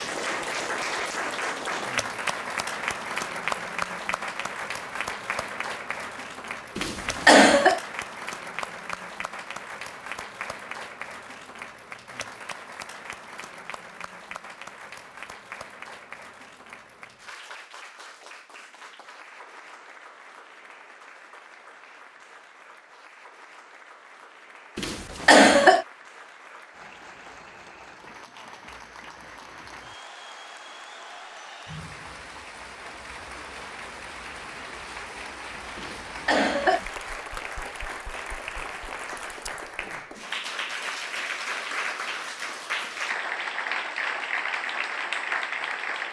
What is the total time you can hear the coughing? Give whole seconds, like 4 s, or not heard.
3 s.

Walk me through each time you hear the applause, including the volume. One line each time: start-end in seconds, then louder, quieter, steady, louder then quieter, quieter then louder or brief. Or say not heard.
0.0-46.0 quieter then louder.